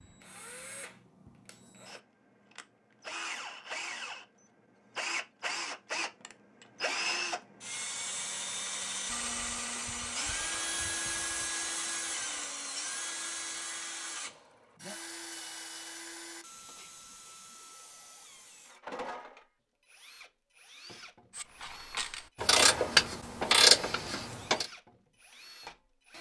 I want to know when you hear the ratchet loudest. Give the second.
24 s.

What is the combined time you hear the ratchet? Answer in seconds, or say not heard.
3 s.